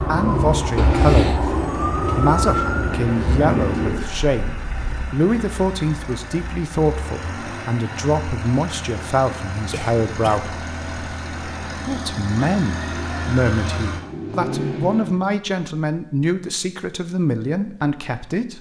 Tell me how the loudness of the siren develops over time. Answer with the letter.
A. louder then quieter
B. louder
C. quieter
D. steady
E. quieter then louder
C.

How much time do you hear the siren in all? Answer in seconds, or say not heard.
5 s.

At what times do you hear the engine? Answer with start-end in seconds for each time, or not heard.
0.1-15.2.